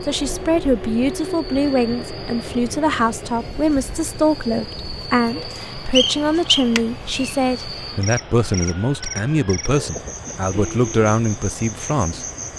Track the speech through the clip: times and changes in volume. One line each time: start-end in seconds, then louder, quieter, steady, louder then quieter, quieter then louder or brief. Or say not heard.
0.1-12.2 steady.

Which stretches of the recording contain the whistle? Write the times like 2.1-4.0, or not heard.
5.9-7.3.